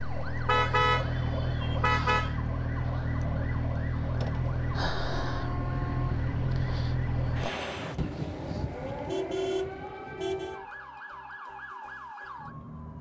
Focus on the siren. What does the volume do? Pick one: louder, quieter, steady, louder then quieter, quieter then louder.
quieter.